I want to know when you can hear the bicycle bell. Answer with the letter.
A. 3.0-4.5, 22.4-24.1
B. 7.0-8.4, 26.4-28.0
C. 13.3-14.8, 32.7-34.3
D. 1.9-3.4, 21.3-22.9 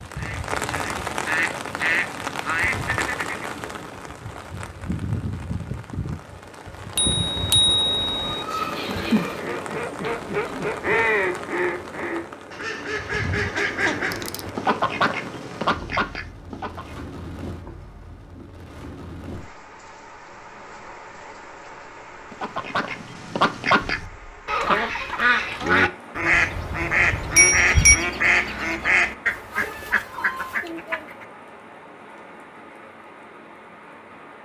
B.